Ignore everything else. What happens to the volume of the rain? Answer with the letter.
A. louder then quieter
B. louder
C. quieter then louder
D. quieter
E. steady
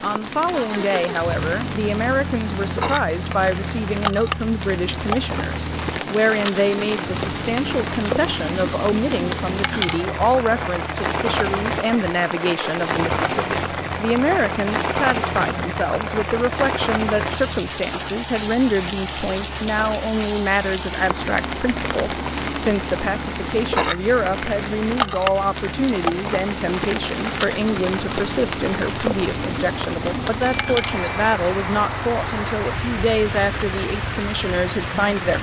E.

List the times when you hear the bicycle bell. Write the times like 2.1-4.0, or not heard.
30.4-31.4.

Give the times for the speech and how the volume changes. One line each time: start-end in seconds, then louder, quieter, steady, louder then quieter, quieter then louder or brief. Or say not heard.
0.0-35.3 steady.